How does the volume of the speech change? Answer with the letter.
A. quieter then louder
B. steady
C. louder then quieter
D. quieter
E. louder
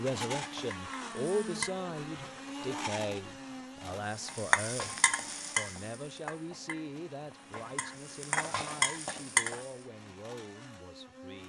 D.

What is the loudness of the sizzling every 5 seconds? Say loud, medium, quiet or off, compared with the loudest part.
loud, loud, off.